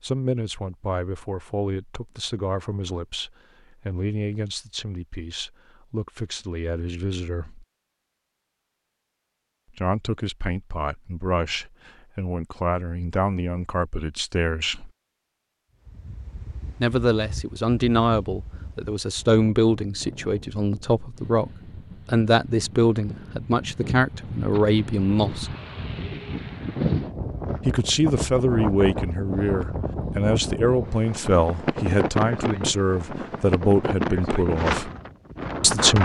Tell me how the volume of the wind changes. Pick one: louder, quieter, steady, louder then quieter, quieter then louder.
louder.